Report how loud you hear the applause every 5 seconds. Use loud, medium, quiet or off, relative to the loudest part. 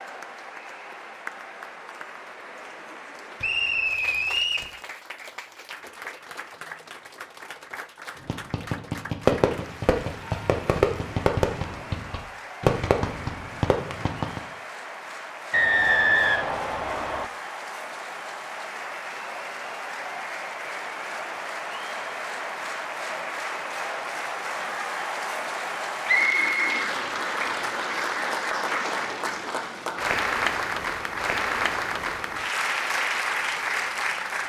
quiet, quiet, quiet, medium, medium, loud, loud.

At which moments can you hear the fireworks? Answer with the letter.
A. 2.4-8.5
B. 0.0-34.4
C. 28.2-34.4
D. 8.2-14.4
D.